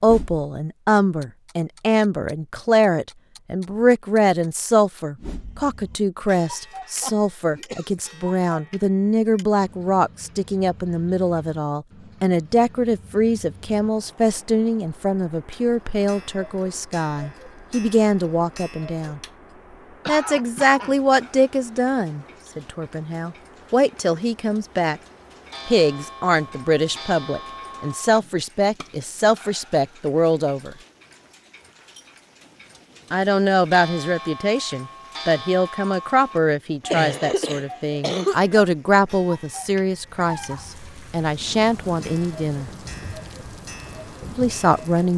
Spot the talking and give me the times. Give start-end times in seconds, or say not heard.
0.0-19.2, 20.1-25.0, 25.6-30.8, 33.1-42.7, 44.3-45.1.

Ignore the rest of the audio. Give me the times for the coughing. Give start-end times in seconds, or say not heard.
6.8-7.9, 20.1-20.9, 36.9-38.5.